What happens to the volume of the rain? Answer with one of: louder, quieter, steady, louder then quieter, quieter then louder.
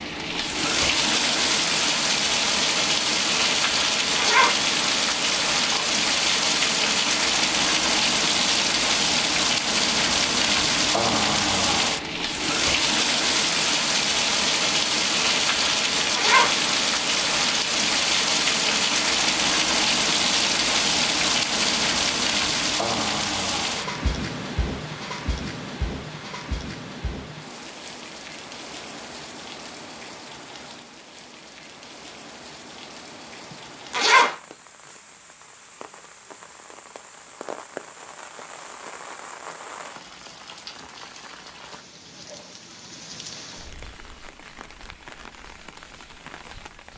quieter.